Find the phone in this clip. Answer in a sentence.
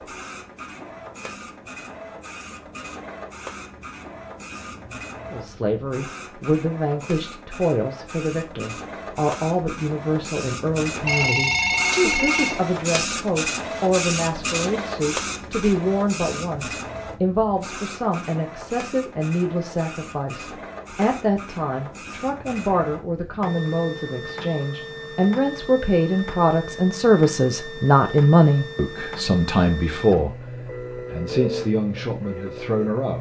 The phone can be heard from 11.1 to 12.6 s.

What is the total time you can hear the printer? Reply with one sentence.
You can hear the printer for 33 seconds altogether.